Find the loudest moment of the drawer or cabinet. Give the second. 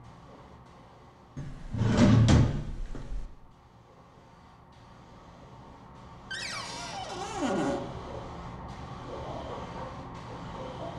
2 s.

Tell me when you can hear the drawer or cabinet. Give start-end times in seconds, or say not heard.
1.4-3.2, 6.3-7.8.